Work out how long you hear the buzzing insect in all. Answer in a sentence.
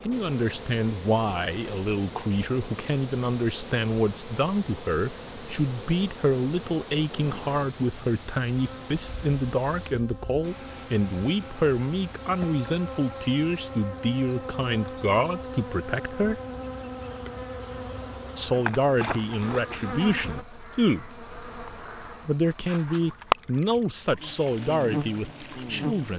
The buzzing insect can be heard for 26 seconds in total.